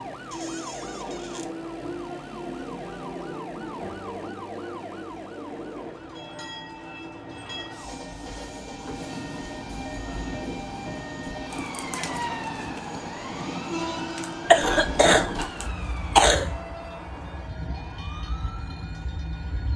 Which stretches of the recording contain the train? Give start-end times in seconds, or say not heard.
0.0-19.7.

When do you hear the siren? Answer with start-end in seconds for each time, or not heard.
0.0-19.7.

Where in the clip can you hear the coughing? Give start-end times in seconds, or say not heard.
14.4-16.6.